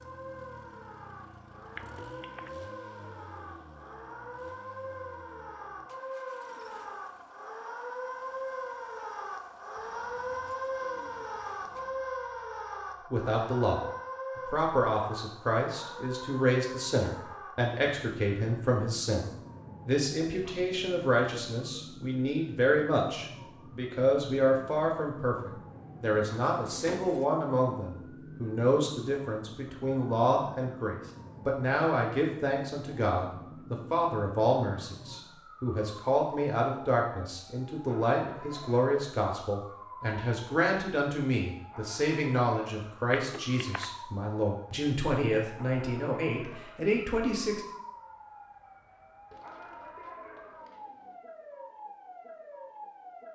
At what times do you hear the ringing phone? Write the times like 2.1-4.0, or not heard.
1.8-2.5, 43.1-43.9.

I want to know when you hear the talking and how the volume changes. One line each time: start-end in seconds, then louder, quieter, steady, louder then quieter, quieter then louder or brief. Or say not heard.
13.1-13.8 brief
14.4-47.6 steady.